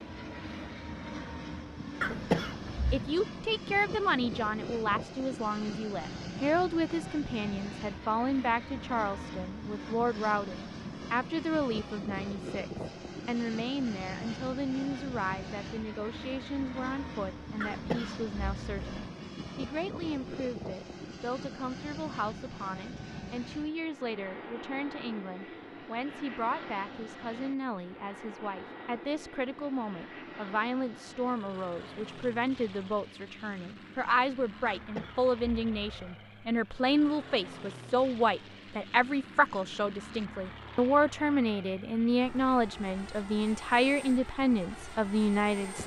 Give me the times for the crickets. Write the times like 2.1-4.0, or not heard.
not heard.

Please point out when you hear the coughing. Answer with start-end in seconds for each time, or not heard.
2.0-3.1, 17.6-19.1, 34.6-36.1.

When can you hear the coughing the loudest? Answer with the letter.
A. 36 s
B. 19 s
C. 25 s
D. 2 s
D.